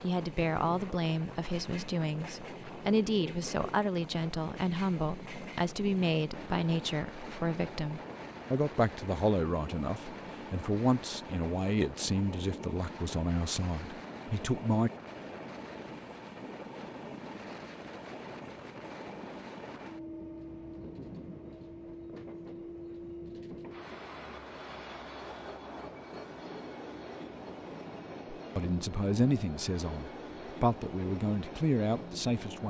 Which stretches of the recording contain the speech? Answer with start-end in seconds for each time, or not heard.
0.0-14.9, 28.6-32.6.